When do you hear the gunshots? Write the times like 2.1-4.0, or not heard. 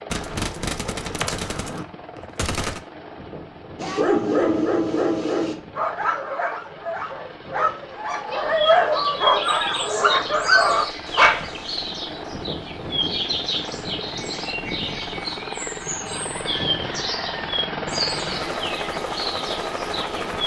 0.1-2.8.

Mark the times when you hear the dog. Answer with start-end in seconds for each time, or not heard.
3.8-11.7.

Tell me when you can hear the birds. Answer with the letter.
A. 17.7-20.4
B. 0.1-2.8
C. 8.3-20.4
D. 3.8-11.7
C.